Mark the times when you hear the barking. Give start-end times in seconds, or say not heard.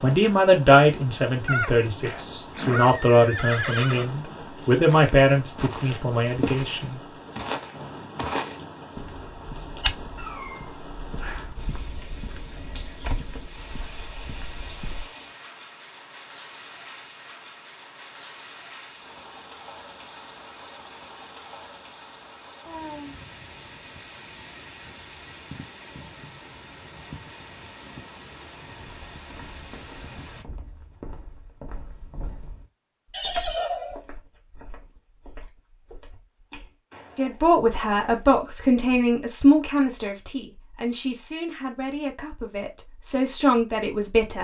10.2-11.6.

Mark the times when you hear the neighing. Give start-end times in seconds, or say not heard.
1.4-4.1, 33.1-34.0.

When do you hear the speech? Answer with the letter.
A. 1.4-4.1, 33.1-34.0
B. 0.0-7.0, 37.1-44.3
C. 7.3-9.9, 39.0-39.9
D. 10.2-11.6
B.